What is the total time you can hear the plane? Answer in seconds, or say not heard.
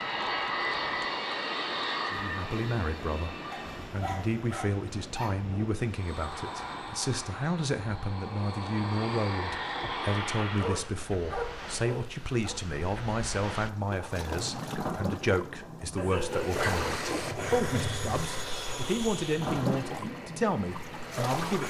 14 s.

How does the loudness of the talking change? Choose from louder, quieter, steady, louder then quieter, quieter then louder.
steady.